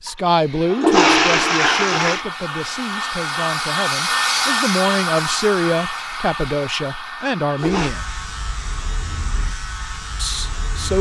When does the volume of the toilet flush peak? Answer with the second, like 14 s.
1 s.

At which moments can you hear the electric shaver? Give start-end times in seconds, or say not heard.
7.6-10.9.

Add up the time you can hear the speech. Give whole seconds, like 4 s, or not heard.
9 s.